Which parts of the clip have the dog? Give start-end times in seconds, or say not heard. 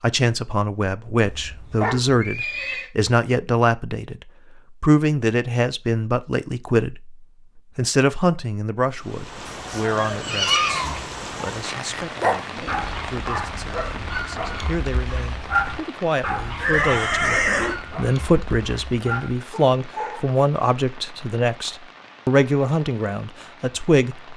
9.7-20.4.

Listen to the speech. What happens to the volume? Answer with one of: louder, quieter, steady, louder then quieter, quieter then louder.
quieter then louder.